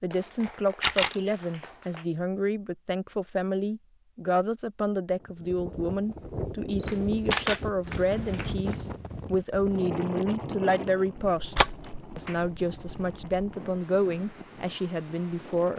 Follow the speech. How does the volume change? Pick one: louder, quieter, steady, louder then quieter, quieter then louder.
steady.